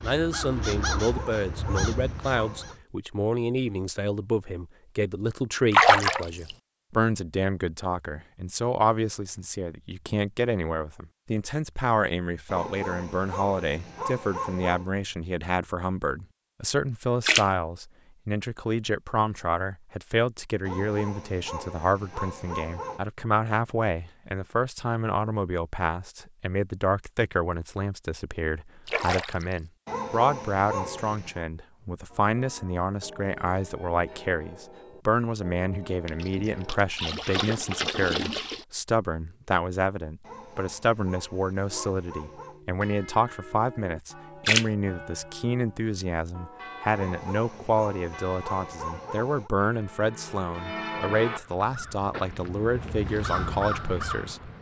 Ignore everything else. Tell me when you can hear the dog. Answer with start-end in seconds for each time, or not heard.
0.8-2.8, 12.4-14.9, 20.6-23.0, 29.9-31.4, 40.2-42.6, 46.9-49.5.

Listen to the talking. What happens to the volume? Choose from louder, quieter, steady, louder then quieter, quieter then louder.
steady.